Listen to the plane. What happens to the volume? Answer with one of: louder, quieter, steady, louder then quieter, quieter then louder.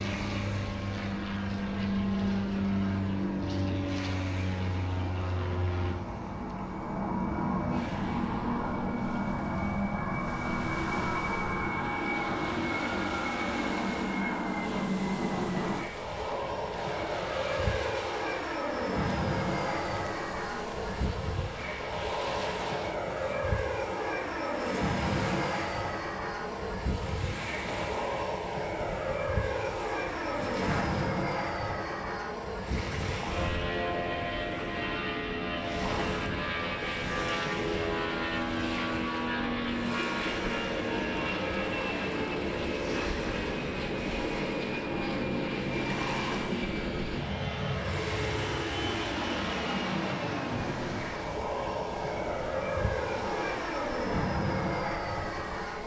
steady.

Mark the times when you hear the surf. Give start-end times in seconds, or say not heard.
0.0-55.8.